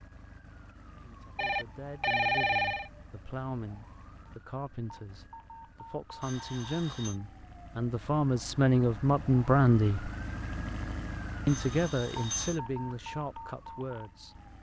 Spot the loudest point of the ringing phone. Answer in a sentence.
The volume of the ringing phone peaks at 2 seconds.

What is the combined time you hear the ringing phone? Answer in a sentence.
The ringing phone can be heard for 4 seconds in total.